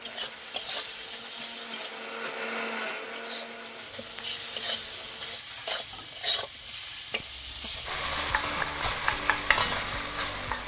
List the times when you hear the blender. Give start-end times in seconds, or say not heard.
0.0-5.5.